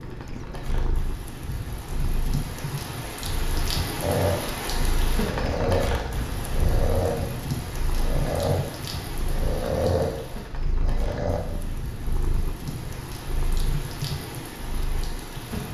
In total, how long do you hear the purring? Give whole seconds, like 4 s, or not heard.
16 s.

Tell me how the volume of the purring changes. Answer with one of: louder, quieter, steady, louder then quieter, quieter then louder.
steady.